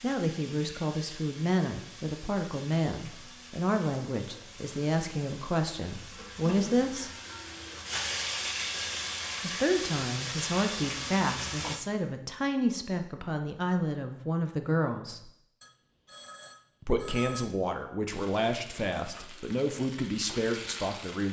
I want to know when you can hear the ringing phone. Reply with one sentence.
You can hear the ringing phone from 15.6 to 17.5 s.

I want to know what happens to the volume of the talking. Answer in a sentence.
The volume of the talking stays about the same.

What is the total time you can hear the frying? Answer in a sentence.
You can hear the frying for 15 seconds altogether.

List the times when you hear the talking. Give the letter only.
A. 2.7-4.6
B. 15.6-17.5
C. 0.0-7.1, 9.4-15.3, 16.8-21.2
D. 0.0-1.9
C.